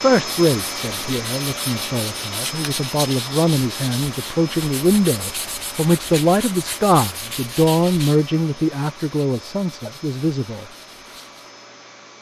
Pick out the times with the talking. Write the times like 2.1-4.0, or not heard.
0.0-10.7.